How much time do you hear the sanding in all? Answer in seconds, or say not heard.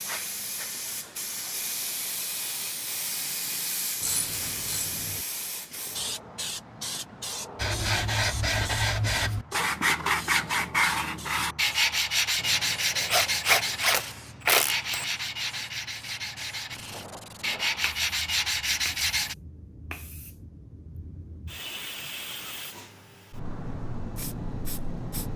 12 s.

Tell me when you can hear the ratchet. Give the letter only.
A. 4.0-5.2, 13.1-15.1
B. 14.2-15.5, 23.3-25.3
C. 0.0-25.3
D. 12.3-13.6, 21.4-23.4
A.